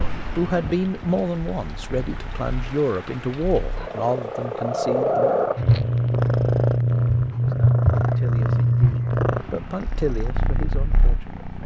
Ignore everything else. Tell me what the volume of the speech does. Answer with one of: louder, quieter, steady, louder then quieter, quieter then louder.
quieter.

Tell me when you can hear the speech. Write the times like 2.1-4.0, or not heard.
0.3-5.3, 7.3-11.6.